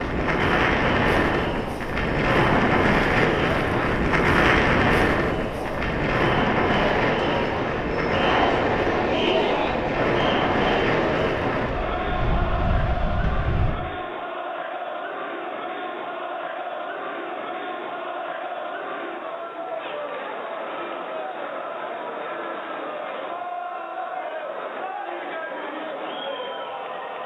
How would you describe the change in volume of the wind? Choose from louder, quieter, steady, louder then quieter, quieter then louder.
quieter.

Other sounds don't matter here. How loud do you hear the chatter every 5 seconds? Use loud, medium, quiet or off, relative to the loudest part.
medium, loud, loud, medium, medium, medium.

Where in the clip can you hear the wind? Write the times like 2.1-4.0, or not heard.
0.0-13.8.